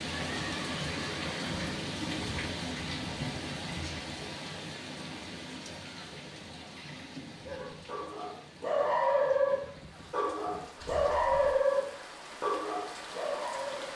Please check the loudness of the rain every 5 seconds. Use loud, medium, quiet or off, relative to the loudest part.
loud, medium, medium.